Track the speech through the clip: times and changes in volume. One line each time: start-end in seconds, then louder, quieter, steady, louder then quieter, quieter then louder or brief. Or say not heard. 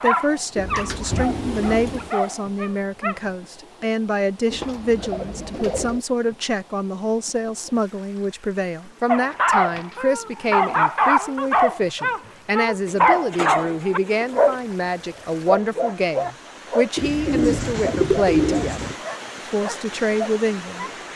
0.0-20.9 steady.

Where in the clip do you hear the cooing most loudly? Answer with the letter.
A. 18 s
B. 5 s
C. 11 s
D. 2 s
A.